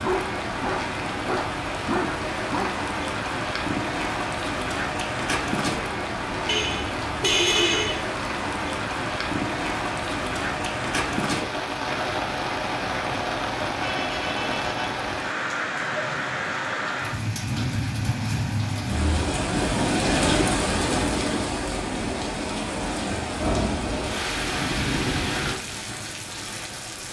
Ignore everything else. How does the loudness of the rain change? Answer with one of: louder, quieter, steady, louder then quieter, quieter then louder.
steady.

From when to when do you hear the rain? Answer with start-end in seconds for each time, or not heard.
0.0-27.0.